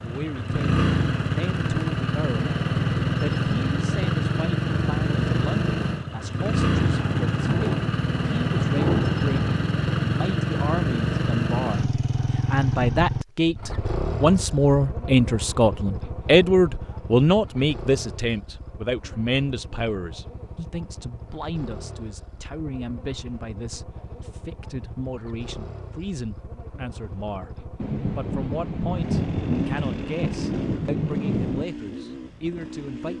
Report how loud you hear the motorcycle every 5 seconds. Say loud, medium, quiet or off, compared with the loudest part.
loud, loud, loud, quiet, quiet, quiet, quiet.